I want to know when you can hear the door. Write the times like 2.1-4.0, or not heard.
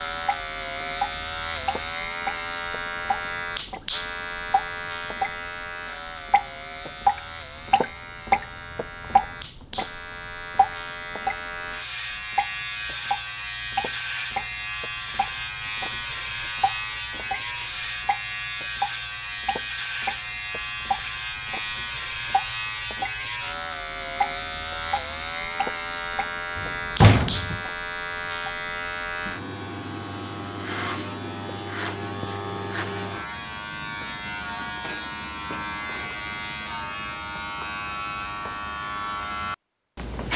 26.6-27.6.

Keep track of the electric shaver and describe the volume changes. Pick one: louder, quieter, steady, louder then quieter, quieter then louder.
steady.